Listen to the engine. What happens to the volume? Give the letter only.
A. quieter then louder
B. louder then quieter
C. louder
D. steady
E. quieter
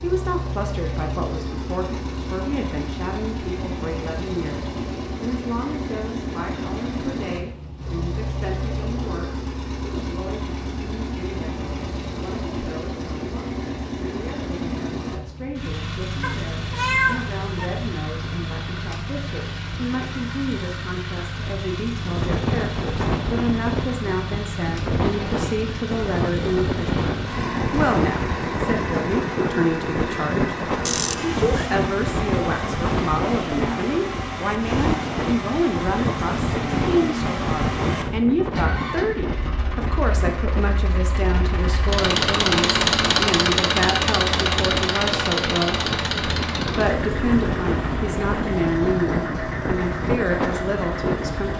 C.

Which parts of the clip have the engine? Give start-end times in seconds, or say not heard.
0.0-51.5.